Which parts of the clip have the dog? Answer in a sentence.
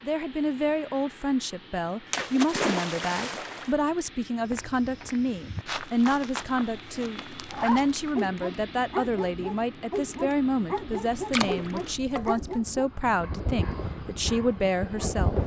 The dog can be heard from 7.5 to 15.1 s.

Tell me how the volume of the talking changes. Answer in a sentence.
The loudness of the talking stays about the same.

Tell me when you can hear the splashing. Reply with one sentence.
The splashing can be heard from 2.1 to 3.8 s and from 11.3 to 12.4 s.